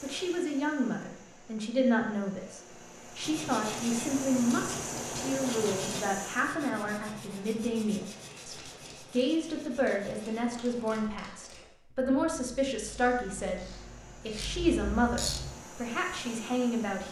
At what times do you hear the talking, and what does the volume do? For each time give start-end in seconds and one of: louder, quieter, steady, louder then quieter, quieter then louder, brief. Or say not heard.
0.0-17.0 steady.